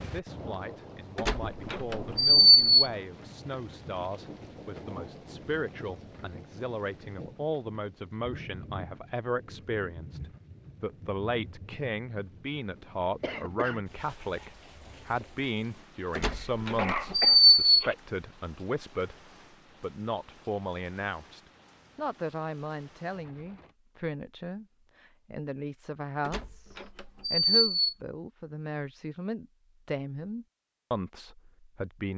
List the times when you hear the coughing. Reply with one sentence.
You can hear the coughing from 13.2 to 13.8 s and from 16.2 to 17.9 s.